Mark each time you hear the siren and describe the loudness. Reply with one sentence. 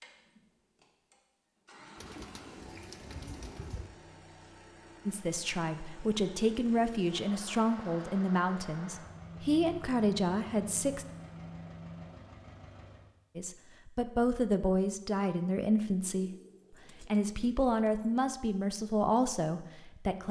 The siren can't be heard in this clip.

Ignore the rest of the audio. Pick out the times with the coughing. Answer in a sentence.
The coughing can't be heard in this clip.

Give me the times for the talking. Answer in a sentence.
You can hear the talking from 5.0 to 11.1 s, from 13.3 to 16.3 s and from 17.0 to 20.2 s.